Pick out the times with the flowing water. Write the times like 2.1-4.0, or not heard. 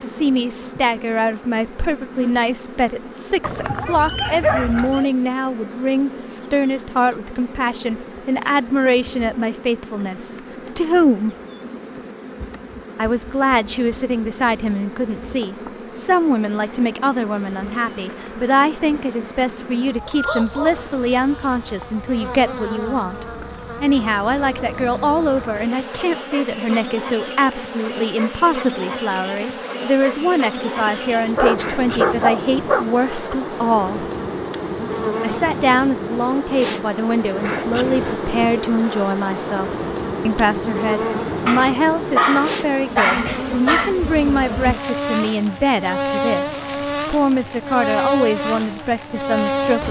not heard.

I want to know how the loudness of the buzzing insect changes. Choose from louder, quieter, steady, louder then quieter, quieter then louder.
louder.